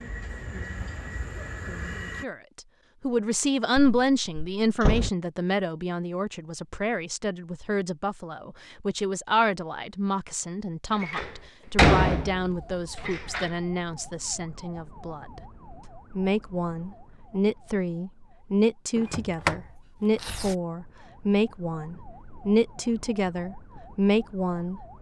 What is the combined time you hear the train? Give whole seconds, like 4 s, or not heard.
2 s.